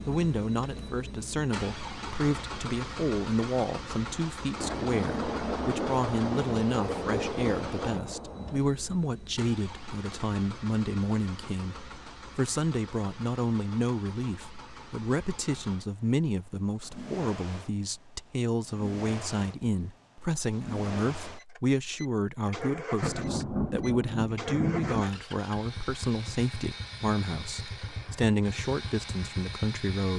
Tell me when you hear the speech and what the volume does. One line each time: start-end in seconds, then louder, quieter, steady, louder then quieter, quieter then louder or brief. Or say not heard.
0.1-30.1 steady.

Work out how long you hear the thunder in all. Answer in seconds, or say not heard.
6 s.